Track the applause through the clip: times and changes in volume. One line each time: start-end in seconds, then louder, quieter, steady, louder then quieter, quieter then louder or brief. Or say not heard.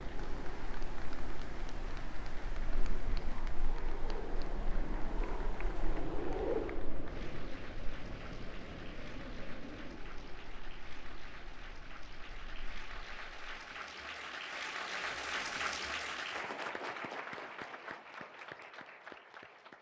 0.0-19.7 louder.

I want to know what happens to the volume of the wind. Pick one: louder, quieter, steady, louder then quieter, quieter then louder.
louder then quieter.